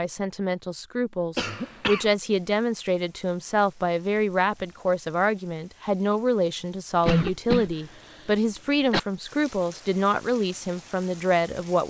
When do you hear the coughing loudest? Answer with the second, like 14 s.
7 s.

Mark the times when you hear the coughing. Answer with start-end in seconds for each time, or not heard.
1.4-2.1, 7.0-9.0.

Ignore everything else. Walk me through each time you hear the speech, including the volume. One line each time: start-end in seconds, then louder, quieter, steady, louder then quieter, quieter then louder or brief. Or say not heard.
0.0-11.8 steady.